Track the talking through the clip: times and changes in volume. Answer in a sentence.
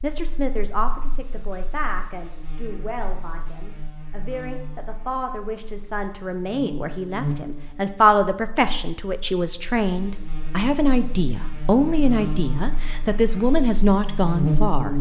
The talking can be heard from 0.0 to 14.9 s, getting louder.